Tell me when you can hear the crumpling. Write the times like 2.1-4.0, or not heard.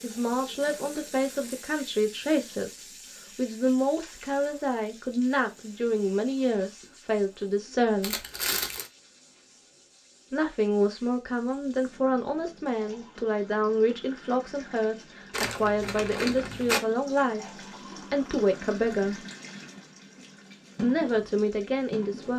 0.6-1.7, 8.0-8.9, 15.3-16.9.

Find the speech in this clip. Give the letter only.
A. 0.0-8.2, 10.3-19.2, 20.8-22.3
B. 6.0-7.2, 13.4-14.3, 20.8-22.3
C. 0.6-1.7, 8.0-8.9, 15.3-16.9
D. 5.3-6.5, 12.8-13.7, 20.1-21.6
A.